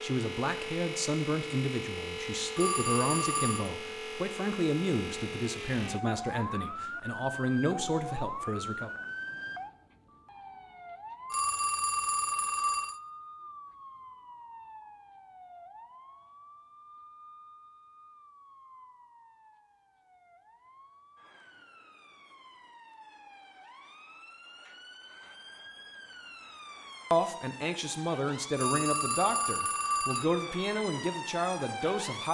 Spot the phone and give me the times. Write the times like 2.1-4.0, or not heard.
2.5-3.7, 11.3-12.9, 28.6-30.2.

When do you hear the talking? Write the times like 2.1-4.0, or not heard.
0.0-8.9, 27.1-32.2.